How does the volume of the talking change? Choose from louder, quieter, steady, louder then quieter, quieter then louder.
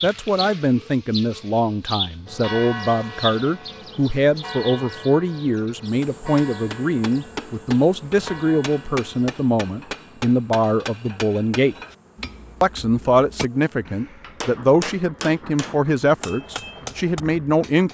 steady.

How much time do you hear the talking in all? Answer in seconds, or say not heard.
17 s.